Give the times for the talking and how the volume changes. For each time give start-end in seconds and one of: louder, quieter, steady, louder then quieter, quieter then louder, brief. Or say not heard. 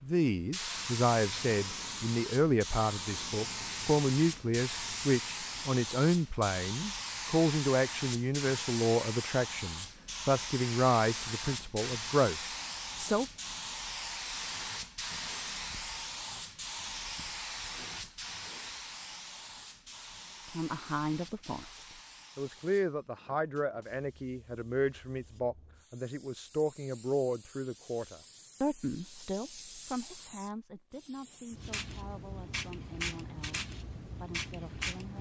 0.0-13.2 steady
20.5-35.1 quieter.